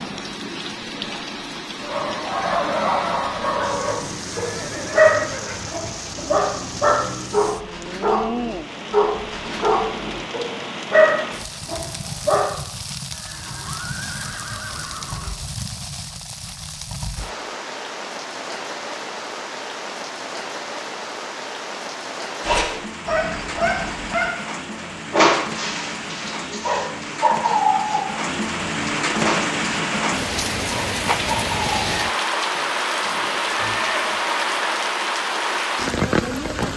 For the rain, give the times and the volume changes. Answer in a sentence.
The rain can be heard from 0.0 to 36.7 s, getting louder.